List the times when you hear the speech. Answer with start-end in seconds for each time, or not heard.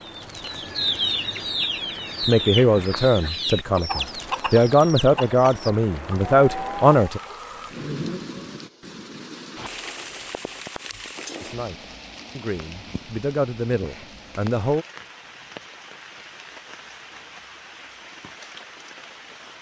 2.2-7.2, 11.4-14.8.